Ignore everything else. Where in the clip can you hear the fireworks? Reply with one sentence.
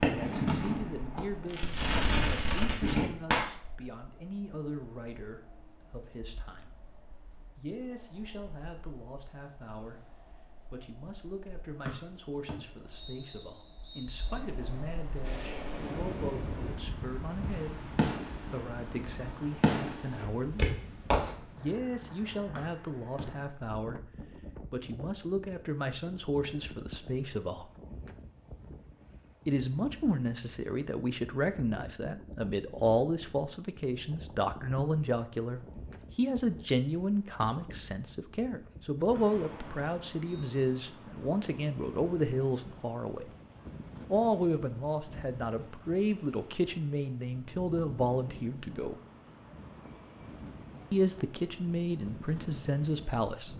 The fireworks can be heard from 0.0 to 3.5 s and from 15.2 to 21.3 s.